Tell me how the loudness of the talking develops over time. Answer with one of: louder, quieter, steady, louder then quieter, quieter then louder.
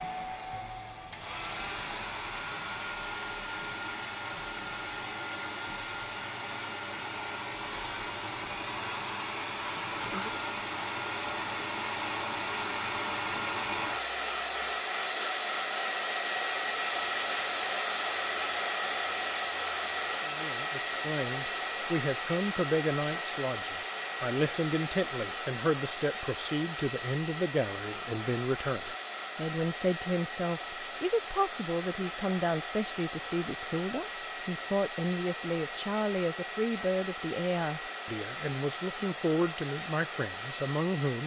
steady.